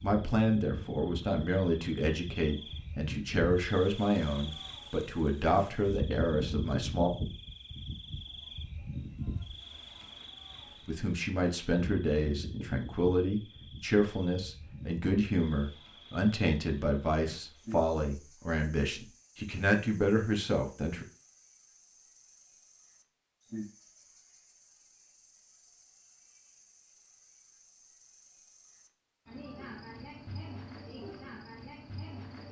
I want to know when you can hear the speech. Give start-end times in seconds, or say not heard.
0.0-7.1, 10.8-21.1.